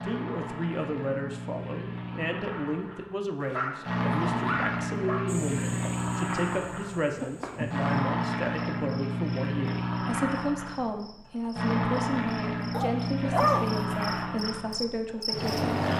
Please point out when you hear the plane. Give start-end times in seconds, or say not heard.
0.0-15.9.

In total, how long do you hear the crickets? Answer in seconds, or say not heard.
11 s.